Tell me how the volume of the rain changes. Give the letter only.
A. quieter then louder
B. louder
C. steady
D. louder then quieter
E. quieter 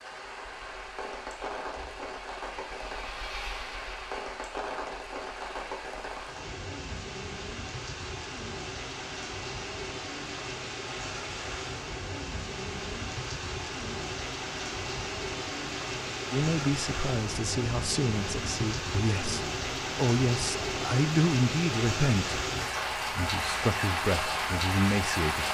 B.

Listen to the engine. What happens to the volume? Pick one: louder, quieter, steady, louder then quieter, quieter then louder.
louder then quieter.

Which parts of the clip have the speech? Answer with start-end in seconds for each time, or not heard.
16.3-25.5.